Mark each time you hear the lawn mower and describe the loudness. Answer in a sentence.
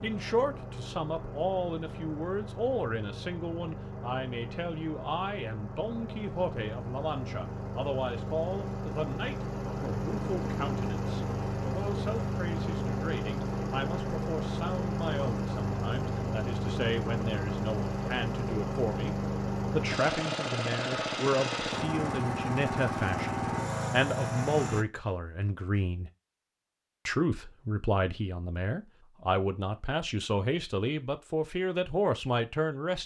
The lawn mower can be heard from 0.0 to 24.9 s, getting louder.